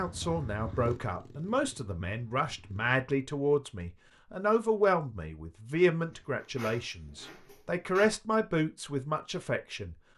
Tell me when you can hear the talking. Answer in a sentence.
You can hear the talking from 0.0 to 9.9 s.